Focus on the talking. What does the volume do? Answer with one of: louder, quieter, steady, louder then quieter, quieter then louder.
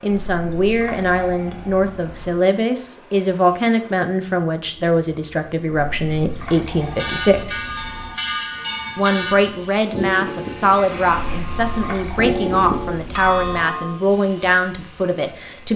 steady.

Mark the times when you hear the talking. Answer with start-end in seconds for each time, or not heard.
0.0-7.7, 8.9-15.7.